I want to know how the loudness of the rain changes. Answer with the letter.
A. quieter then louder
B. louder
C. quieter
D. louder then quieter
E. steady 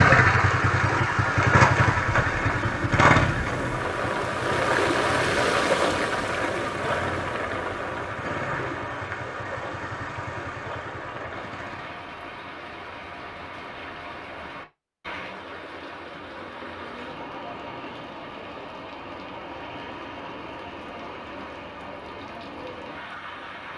C.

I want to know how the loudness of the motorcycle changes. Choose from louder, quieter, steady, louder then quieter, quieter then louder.
quieter.